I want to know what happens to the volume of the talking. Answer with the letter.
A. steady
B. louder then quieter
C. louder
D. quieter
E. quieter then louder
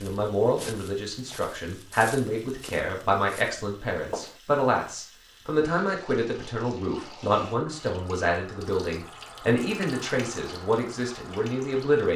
A.